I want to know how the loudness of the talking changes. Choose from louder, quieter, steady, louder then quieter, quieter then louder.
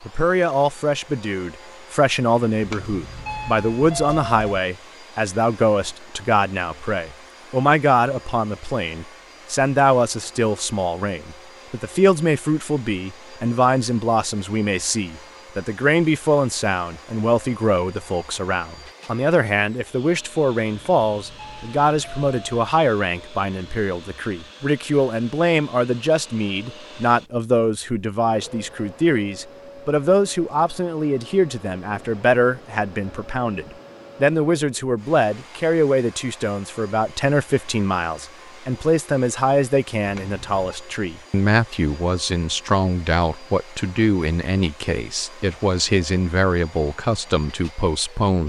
steady.